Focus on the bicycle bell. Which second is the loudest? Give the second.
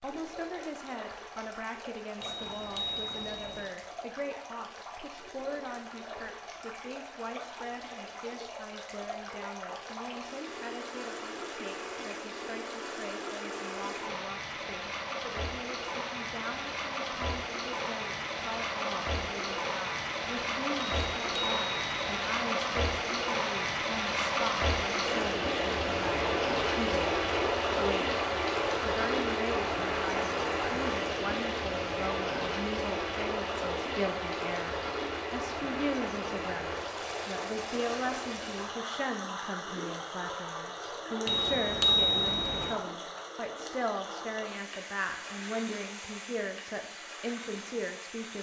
42 s.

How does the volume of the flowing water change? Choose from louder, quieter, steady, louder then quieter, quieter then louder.
louder then quieter.